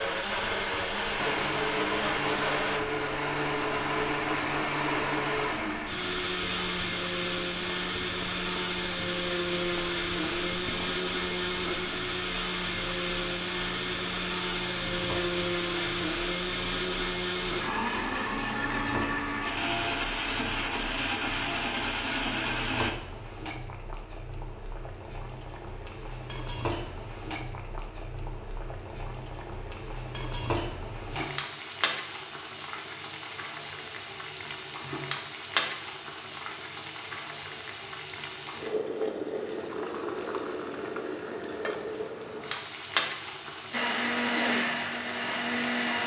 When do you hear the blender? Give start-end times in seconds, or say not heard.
0.0-22.9, 43.7-46.0.